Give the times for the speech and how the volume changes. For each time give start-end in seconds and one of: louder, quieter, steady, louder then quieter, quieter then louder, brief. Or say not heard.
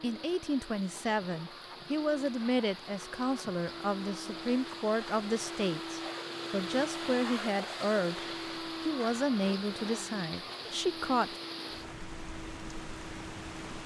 0.0-11.3 steady.